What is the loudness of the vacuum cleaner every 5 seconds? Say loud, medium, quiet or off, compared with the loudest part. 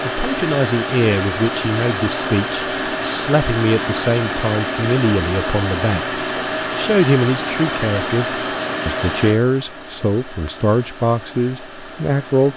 loud, loud, quiet.